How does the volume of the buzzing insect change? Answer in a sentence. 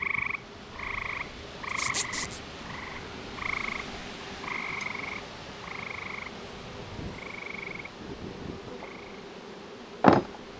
The loudness of the buzzing insect goes up.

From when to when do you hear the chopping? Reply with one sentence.
The chopping can't be heard in this clip.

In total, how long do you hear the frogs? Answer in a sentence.
You can hear the frogs for 9 seconds altogether.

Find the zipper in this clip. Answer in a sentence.
You can hear the zipper from 1.6 to 2.4 s.